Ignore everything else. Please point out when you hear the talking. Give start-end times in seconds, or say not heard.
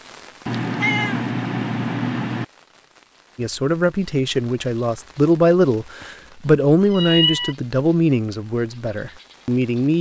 3.4-9.9.